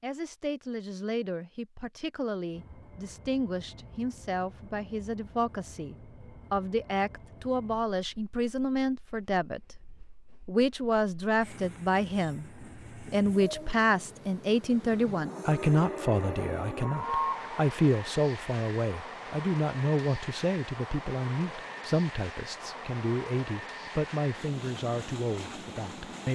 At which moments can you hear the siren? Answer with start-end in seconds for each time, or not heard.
15.2-17.5.